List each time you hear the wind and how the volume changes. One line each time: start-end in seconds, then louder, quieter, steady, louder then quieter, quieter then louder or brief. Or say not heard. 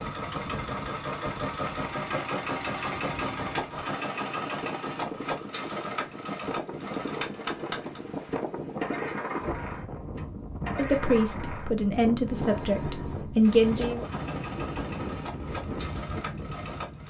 0.0-17.0 louder.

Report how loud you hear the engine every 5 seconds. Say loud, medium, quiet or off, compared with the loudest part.
loud, loud, medium, medium.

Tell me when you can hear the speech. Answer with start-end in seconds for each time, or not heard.
10.8-14.1.